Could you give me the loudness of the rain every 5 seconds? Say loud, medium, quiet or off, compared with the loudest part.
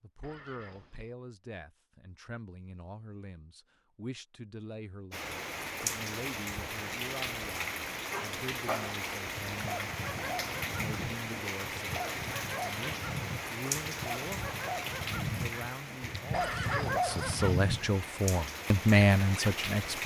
off, loud, loud, loud.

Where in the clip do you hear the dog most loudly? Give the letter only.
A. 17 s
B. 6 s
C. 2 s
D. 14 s
A.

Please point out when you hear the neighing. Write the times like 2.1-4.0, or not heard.
0.2-1.1, 16.3-17.6.